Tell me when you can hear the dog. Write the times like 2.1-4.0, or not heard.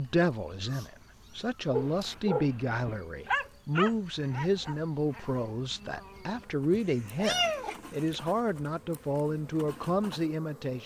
1.7-5.5.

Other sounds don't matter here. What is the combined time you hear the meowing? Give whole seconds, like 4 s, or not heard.
3 s.